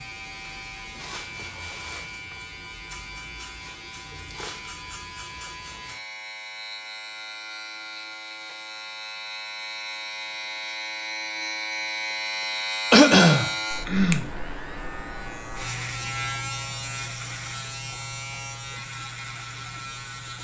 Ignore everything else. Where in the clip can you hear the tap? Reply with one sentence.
You can't hear the tap here.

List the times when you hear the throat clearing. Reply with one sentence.
The throat clearing can be heard from 12.9 to 14.2 s.